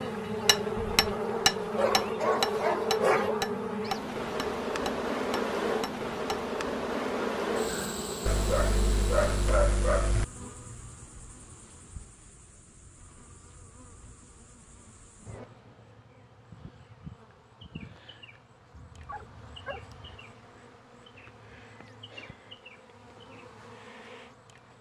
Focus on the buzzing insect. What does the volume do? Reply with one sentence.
The volume of the buzzing insect goes down.